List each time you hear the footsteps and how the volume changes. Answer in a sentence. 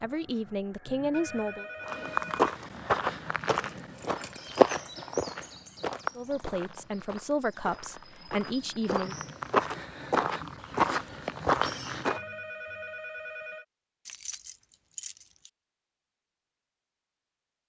The footsteps can be heard from 1.9 to 12.2 s, getting quieter then louder.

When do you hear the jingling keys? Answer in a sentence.
The jingling keys can be heard from 3.8 to 4.6 s and from 14.1 to 15.5 s.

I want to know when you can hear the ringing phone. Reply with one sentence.
You can hear the ringing phone from 0.8 to 2.5 s and from 11.8 to 13.7 s.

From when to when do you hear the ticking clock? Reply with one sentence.
The ticking clock can't be heard in this clip.